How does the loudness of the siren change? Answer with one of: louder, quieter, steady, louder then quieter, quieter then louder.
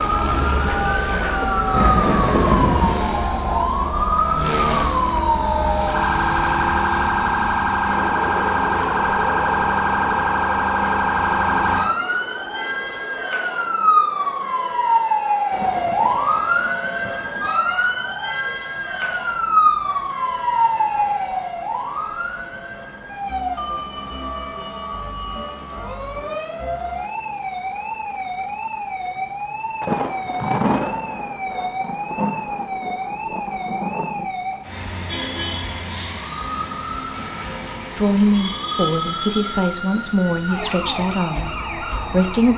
quieter.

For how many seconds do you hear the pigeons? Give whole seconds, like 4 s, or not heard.
not heard.